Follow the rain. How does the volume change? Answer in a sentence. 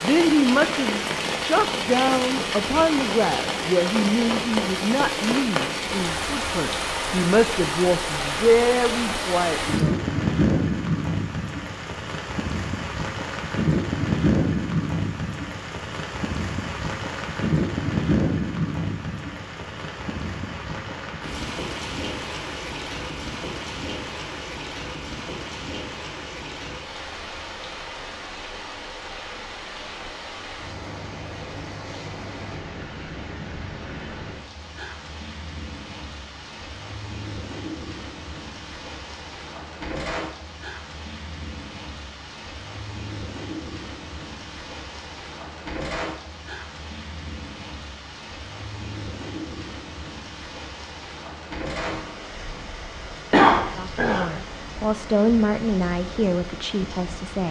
The volume of the rain goes down.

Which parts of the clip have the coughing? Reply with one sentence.
You can hear the coughing from 53.3 to 54.2 s.